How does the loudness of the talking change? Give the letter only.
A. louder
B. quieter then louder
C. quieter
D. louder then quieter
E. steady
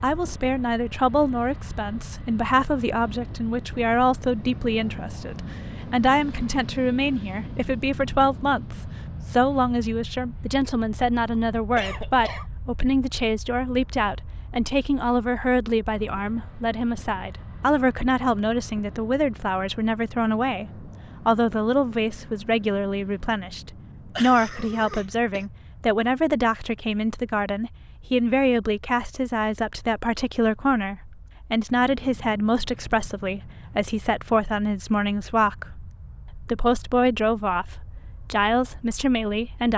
E.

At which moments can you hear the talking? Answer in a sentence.
The talking can be heard from 0.0 to 39.7 s.